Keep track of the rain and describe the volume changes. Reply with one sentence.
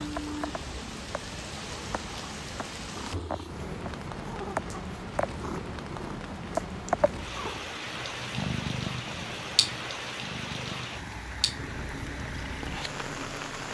The volume of the rain stays about the same.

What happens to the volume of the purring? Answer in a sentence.
The loudness of the purring goes up, then down.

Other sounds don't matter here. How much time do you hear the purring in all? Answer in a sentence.
You can hear the purring for 14 seconds altogether.